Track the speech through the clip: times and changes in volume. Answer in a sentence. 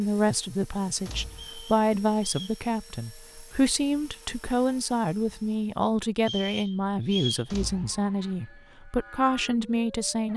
You can hear the speech from 0.0 to 10.3 s, at a steady volume.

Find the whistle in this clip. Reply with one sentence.
The whistle can be heard from 1.3 to 2.6 s and from 6.2 to 7.5 s.